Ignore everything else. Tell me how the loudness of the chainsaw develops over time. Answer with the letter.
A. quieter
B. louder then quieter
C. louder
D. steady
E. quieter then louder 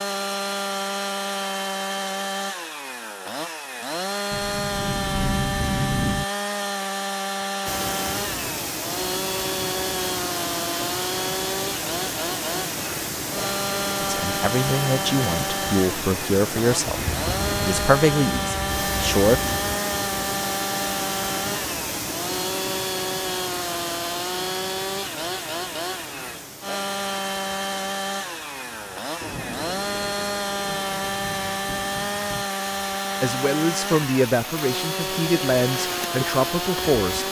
D.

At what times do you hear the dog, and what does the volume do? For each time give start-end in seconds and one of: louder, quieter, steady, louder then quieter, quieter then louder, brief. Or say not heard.
not heard.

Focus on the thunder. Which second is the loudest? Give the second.
6 s.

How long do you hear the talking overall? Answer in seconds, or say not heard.
9 s.